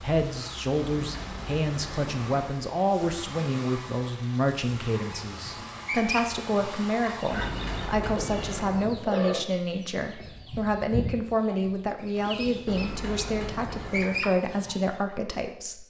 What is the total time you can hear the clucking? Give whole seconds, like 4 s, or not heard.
10 s.